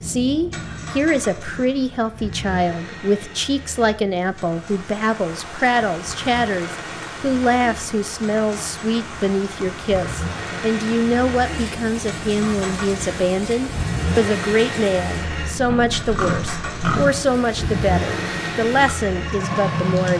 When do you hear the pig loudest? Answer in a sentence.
The loudest moment of the pig is at 17 seconds.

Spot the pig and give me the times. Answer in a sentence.
You can hear the pig from 15.7 to 17.2 s.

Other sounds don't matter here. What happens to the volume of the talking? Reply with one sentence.
The volume of the talking stays about the same.